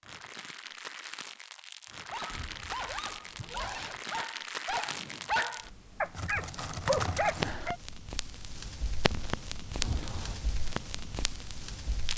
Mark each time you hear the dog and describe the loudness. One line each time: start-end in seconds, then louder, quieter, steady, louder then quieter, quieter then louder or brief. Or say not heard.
2.1-7.8 louder.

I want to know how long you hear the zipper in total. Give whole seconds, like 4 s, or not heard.
2 s.